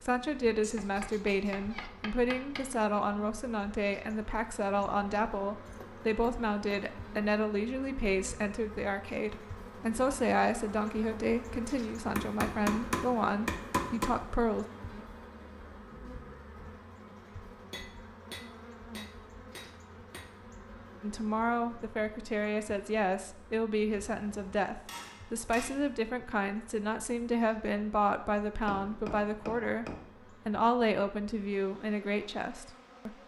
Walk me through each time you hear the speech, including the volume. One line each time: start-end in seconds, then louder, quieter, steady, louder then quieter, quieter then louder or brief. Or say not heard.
0.0-14.7 steady
21.0-33.1 steady.